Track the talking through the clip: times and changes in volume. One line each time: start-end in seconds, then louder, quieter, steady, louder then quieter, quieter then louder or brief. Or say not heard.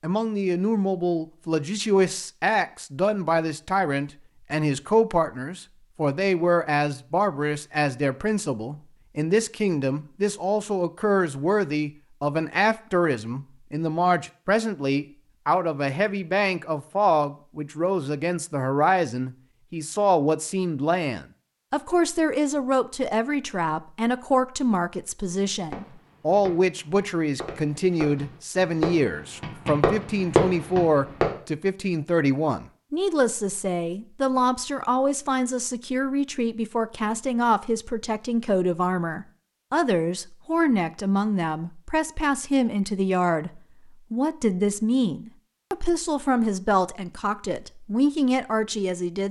0.0-49.2 steady.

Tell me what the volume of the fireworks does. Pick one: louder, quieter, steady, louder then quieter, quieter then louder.
louder.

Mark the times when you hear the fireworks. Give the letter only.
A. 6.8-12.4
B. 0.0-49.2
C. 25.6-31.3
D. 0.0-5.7
C.